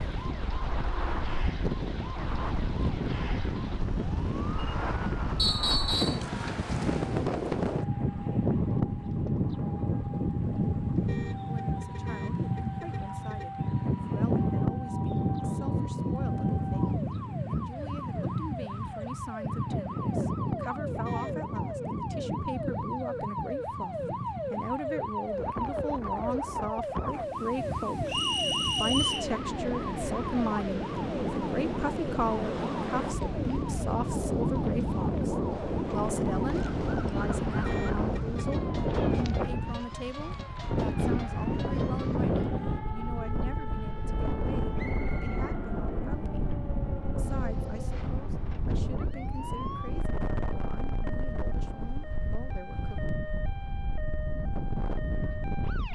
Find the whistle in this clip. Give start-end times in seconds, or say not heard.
5.3-6.2, 28.1-29.3, 44.8-45.6.